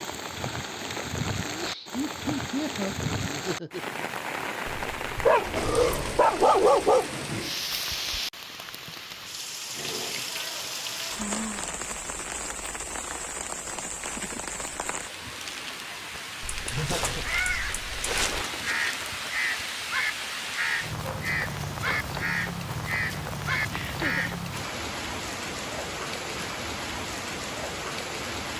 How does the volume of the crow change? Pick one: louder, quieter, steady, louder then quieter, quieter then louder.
steady.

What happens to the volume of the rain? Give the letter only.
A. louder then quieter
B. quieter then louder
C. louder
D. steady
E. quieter
D.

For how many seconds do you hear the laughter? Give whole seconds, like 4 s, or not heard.
4 s.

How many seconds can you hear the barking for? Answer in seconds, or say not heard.
3 s.